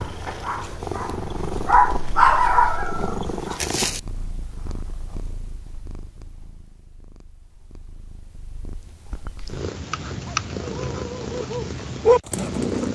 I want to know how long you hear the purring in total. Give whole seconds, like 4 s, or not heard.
13 s.